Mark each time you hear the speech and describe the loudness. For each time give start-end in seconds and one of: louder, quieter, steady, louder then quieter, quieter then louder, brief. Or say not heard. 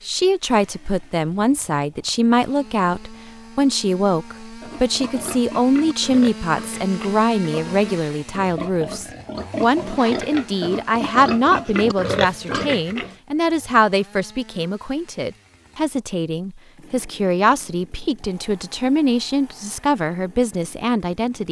0.0-21.4 steady.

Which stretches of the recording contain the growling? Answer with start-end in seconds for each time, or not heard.
not heard.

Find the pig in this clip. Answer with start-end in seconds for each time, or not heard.
4.6-13.2.